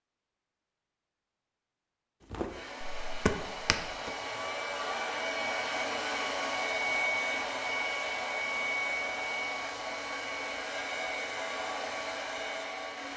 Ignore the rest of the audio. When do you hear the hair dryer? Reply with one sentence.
You can hear the hair dryer from 2.5 to 13.1 s.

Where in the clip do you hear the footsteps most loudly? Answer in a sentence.
The volume of the footsteps peaks at 3 seconds.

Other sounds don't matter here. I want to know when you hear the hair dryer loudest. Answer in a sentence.
The loudest moment of the hair dryer is at 7 seconds.